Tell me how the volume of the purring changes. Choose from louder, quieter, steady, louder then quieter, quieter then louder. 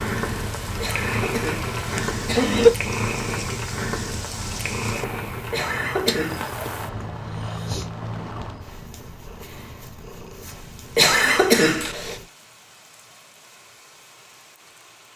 quieter.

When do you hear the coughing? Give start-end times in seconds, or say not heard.
0.8-2.7, 5.5-6.5, 10.9-12.2.